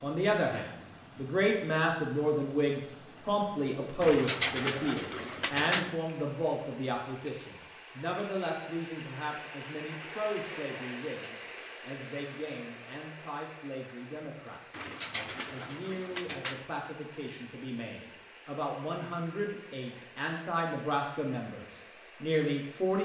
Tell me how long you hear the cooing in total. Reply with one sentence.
You can hear the cooing for 4 seconds altogether.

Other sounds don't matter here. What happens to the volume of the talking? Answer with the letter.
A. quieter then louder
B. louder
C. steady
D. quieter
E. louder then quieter
A.